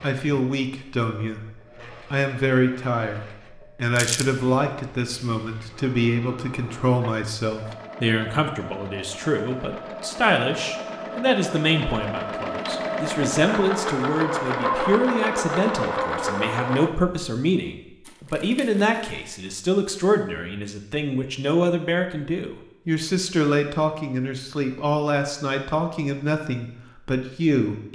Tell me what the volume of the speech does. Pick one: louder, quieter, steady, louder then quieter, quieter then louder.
steady.